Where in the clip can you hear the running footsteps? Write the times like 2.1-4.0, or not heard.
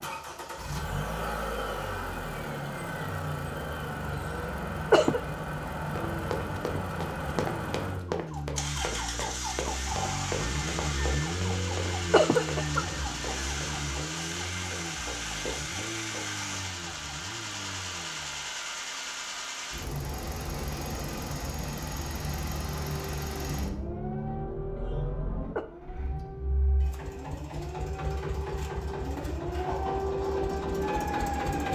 6.0-16.6.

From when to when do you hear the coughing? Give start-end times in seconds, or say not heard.
4.3-5.2, 11.6-12.8, 24.8-25.6.